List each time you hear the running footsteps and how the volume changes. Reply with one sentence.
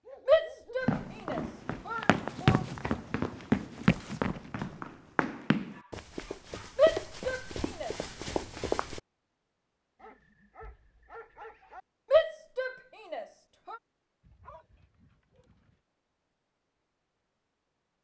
You can hear the running footsteps from 0.8 to 9.0 s, getting quieter.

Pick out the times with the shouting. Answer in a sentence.
You can hear the shouting from 0.2 to 2.6 s, from 6.8 to 8.0 s and from 12.1 to 13.8 s.